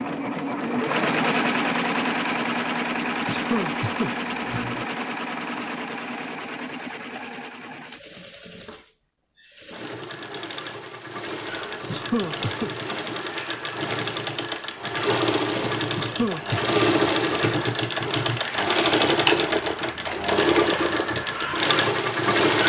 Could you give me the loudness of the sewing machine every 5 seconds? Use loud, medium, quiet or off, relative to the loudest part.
loud, quiet, medium, loud, loud.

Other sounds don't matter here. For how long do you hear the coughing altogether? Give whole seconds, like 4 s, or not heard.
4 s.